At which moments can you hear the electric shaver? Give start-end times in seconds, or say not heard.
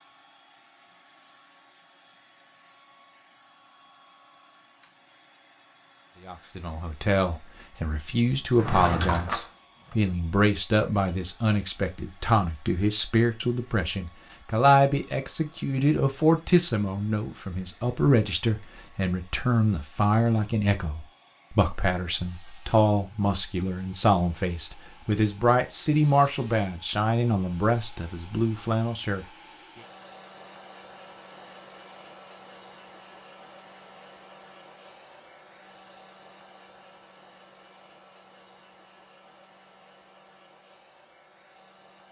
not heard.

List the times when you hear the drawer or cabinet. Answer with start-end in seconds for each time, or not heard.
8.5-9.9.